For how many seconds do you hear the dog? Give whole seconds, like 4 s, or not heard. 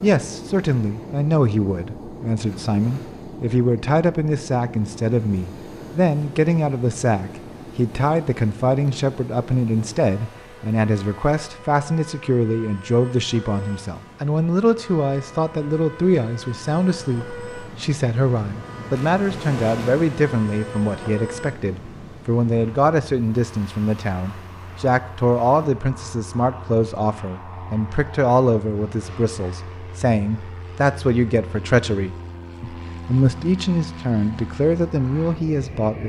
not heard.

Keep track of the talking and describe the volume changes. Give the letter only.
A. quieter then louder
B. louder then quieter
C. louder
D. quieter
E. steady
E.